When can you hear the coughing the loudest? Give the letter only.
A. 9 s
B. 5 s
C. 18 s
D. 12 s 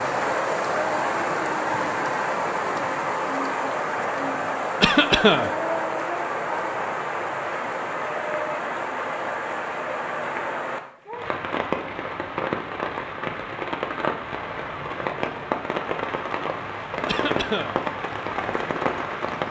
B.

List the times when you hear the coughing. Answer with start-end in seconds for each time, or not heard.
4.8-5.5, 17.1-17.8.